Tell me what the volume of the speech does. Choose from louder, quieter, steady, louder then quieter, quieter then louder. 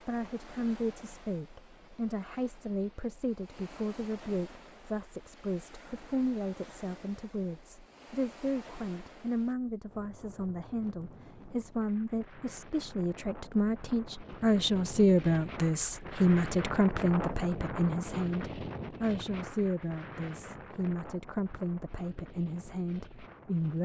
louder then quieter.